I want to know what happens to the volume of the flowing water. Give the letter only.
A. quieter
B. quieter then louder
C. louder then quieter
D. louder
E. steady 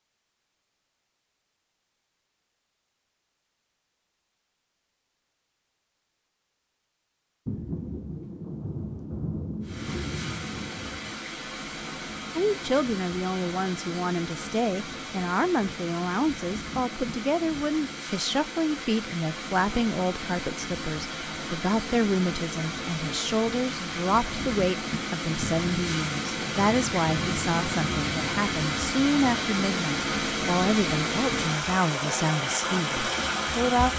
D.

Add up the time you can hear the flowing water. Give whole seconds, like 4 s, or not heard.
24 s.